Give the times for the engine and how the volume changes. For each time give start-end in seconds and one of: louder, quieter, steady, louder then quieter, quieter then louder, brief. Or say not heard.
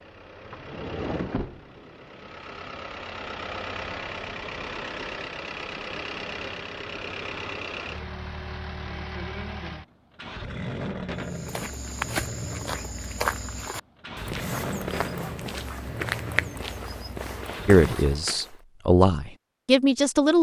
0.0-17.9 steady.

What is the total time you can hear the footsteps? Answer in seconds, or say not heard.
7 s.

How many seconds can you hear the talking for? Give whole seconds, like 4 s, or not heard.
3 s.